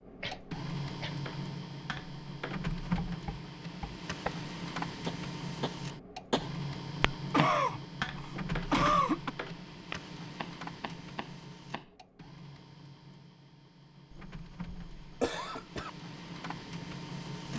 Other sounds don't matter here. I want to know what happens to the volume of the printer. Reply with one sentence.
The volume of the printer goes down.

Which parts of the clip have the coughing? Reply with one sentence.
The coughing can be heard from 0.2 to 1.1 s, from 7.3 to 9.3 s and from 14.2 to 15.9 s.